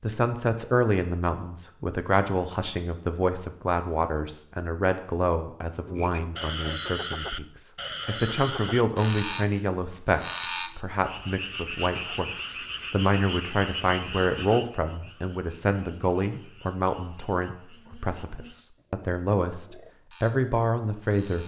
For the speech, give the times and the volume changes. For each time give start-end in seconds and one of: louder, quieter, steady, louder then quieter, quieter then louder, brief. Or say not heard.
0.0-21.4 steady.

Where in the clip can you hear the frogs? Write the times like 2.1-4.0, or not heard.
5.8-21.4.